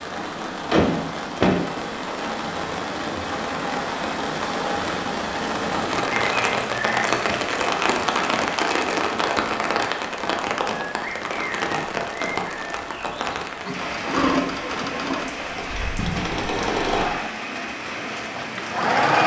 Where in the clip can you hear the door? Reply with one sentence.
The door can be heard from 0.7 to 1.6 s and from 15.7 to 16.4 s.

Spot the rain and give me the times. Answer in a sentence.
You can hear the rain from 0.0 to 19.1 s.